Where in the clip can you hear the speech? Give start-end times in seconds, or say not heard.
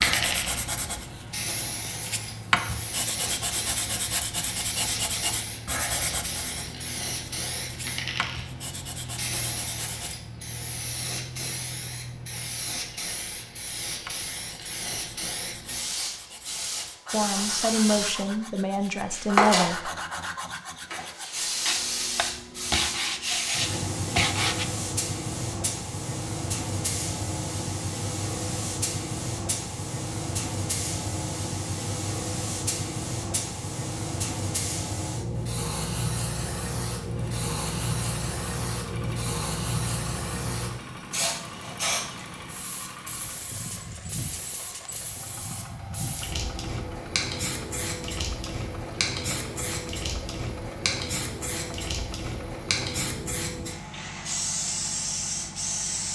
17.1-19.9.